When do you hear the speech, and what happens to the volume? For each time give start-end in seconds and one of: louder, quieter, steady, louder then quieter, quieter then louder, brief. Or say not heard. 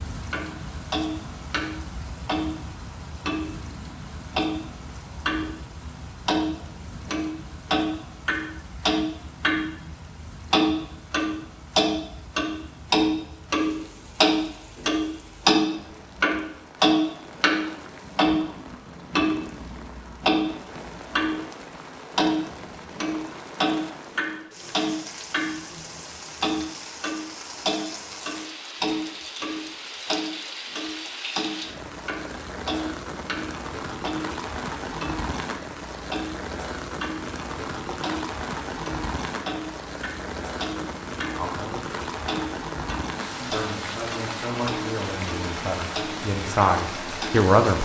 41.4-42.0 brief
43.4-47.8 louder.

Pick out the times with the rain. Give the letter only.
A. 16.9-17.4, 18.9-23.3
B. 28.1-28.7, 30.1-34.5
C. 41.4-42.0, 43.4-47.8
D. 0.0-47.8
D.